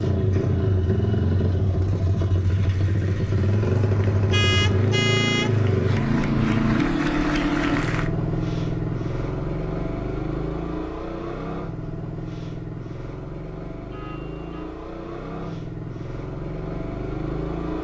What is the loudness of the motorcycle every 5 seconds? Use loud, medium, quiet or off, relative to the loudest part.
loud, loud, medium, medium.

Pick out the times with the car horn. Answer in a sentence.
You can hear the car horn from 4.3 to 5.6 s and from 13.9 to 14.7 s.